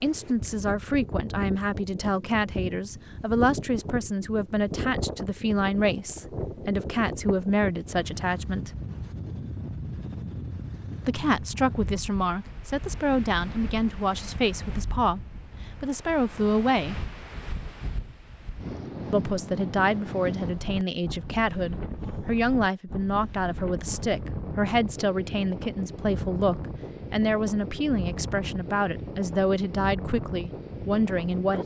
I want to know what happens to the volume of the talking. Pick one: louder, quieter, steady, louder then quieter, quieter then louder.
steady.